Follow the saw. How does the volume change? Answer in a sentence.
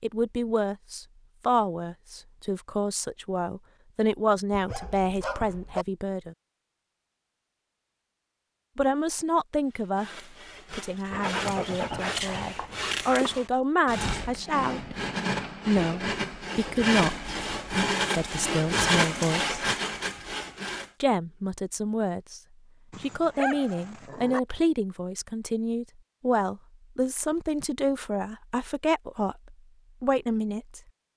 The volume of the saw goes up.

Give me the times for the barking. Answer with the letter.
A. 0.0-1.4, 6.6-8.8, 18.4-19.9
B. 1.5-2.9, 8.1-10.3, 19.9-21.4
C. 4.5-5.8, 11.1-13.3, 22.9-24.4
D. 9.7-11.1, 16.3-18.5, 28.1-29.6
C.